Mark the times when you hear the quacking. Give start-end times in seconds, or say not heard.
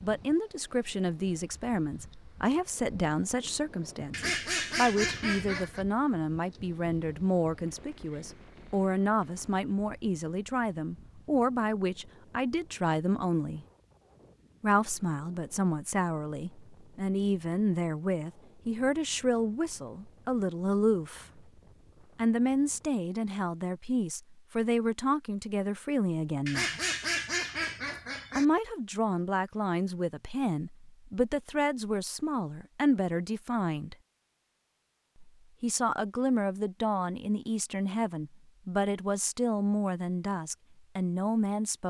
4.1-5.8, 26.4-28.4.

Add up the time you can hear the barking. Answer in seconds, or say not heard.
not heard.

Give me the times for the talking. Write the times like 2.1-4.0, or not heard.
0.0-13.7, 14.6-21.4, 22.1-26.8, 28.3-34.0, 35.2-41.8.